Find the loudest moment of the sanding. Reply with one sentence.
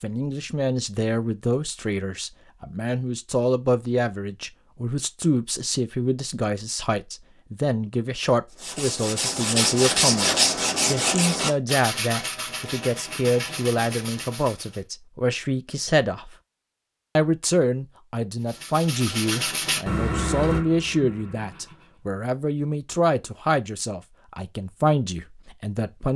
The volume of the sanding peaks at 10 seconds.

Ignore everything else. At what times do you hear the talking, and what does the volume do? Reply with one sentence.
The talking can be heard from 0.0 to 16.4 s, at a steady volume; and from 17.1 to 26.1 s, at a steady volume.